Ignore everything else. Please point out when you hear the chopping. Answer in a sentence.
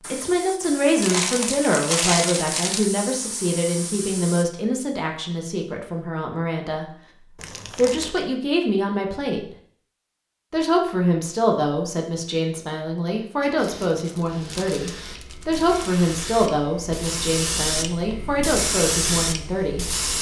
You can't hear the chopping here.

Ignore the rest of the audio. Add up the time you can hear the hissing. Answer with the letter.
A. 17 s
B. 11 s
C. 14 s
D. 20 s
B.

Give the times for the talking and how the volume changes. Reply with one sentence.
The talking can be heard from 0.1 to 6.8 s, getting quieter; briefly from 7.8 to 9.6 s; and from 10.5 to 19.9 s, at a steady volume.